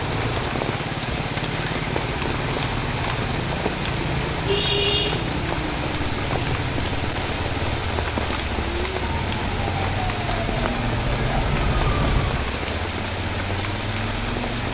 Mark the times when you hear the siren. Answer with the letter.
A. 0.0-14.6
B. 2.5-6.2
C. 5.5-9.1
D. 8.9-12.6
D.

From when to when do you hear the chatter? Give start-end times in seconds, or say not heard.
not heard.